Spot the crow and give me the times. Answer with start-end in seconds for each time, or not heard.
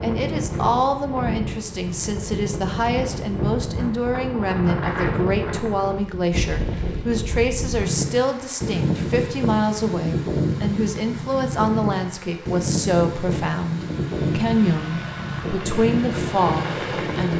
not heard.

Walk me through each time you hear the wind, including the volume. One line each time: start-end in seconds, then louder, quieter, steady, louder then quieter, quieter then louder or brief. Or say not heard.
0.0-17.3 steady.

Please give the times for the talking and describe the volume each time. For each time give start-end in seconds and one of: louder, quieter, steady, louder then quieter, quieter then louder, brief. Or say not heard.
0.0-17.3 steady.